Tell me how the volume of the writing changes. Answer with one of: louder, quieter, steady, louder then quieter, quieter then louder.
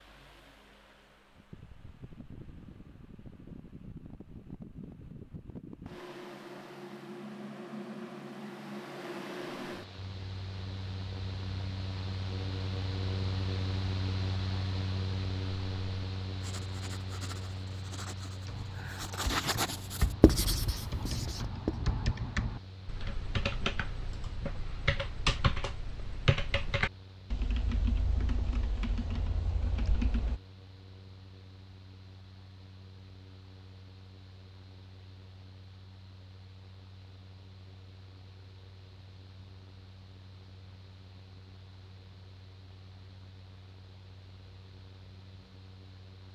louder then quieter.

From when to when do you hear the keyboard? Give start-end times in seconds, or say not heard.
18.4-30.4.